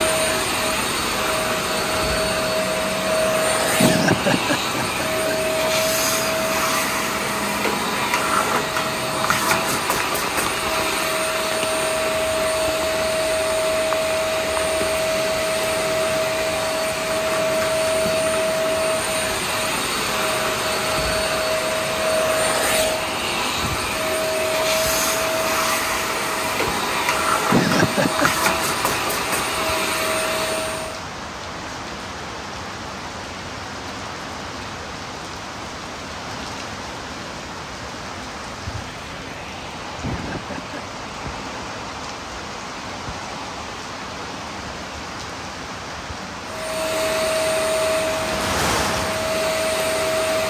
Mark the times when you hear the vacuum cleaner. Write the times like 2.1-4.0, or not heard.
0.0-31.0, 46.5-50.4.